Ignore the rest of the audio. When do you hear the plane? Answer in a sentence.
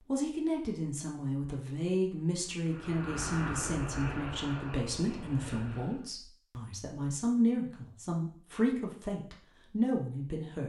The plane can be heard from 2.6 to 6.1 s.